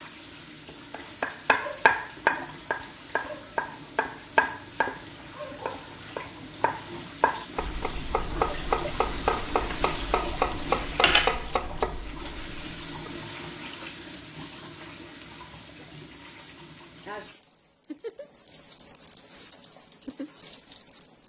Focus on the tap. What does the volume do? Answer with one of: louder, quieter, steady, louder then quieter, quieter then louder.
louder then quieter.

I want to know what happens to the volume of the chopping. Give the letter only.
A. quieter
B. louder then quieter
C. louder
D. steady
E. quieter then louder
E.